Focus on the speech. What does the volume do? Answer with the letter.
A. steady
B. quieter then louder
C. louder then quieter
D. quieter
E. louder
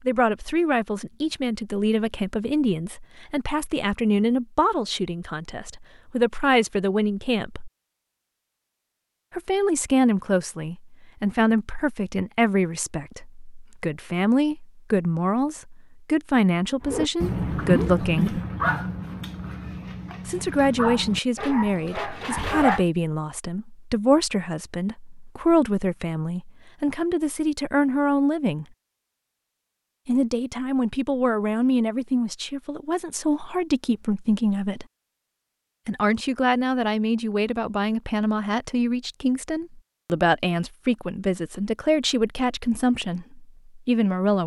A.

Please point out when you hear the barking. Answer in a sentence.
The barking can be heard from 16.9 to 22.9 s.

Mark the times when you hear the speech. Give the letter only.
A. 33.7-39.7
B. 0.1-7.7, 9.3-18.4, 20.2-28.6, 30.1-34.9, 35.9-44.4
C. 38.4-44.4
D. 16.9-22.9
B.